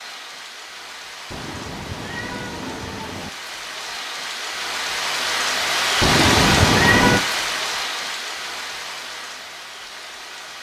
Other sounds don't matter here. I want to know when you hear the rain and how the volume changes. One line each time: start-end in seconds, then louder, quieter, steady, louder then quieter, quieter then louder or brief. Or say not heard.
0.0-10.5 louder then quieter.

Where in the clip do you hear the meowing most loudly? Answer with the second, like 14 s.
7 s.